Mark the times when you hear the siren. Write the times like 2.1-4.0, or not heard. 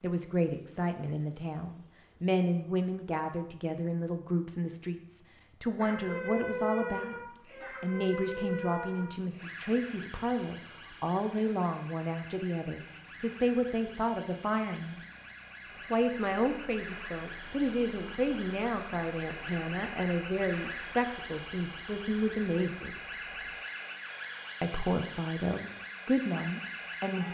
5.8-27.2.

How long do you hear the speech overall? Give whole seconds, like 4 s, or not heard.
24 s.